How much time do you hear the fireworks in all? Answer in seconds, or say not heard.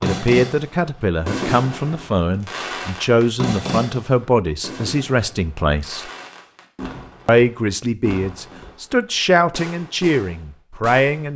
11 s.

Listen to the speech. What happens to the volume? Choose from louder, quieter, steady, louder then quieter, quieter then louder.
steady.